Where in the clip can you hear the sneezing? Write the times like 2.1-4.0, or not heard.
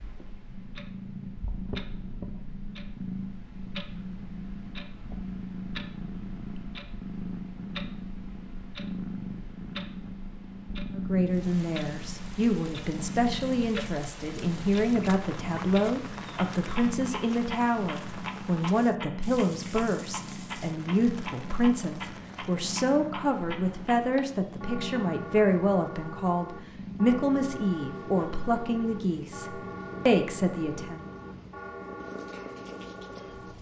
not heard.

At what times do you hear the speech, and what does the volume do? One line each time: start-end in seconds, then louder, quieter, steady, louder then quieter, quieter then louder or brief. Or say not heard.
10.9-31.1 steady.